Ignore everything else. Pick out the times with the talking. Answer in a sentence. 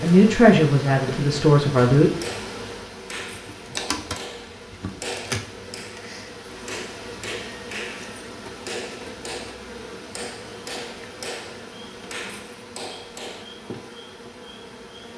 The talking can be heard from 0.0 to 2.1 s.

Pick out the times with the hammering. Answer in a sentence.
You can hear the hammering from 2.0 to 13.4 s.